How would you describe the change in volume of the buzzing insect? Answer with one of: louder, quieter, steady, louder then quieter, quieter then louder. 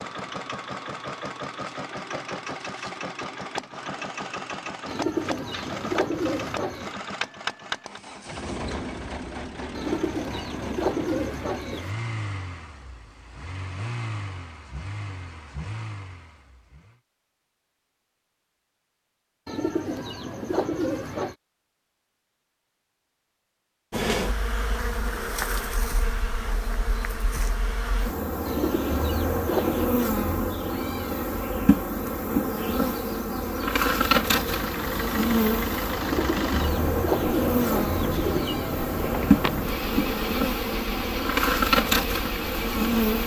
louder.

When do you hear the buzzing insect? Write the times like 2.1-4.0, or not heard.
23.9-43.2.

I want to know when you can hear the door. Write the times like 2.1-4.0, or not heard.
39.0-39.7.